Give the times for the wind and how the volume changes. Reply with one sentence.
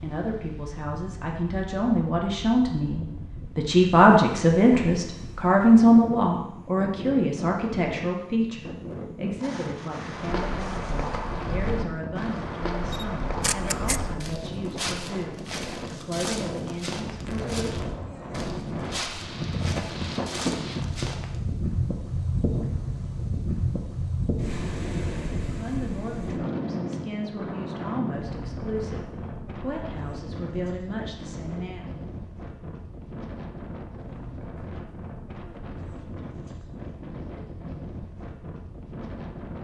The wind can be heard from 0.0 to 39.5 s, getting louder then quieter.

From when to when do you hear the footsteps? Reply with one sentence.
The footsteps can be heard from 10.1 to 21.4 s.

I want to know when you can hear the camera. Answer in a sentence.
The camera can be heard from 12.9 to 14.0 s.